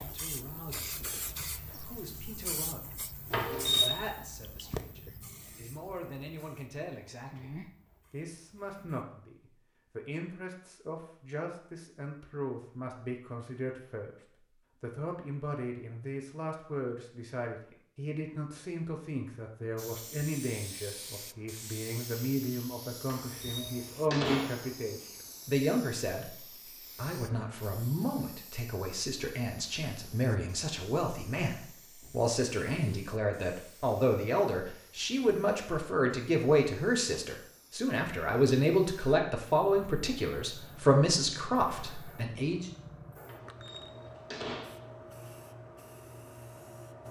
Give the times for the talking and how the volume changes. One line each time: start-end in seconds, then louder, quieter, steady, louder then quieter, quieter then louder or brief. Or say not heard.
0.0-14.1 louder
14.8-42.7 louder.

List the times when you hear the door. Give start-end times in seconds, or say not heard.
3.3-4.0, 23.1-24.6, 43.2-44.9.